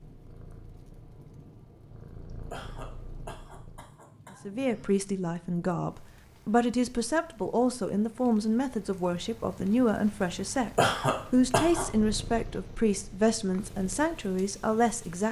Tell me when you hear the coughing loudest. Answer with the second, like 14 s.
11 s.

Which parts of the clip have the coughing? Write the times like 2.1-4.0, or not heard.
2.5-4.9, 10.8-11.8.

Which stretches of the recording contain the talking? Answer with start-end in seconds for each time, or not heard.
4.5-15.2.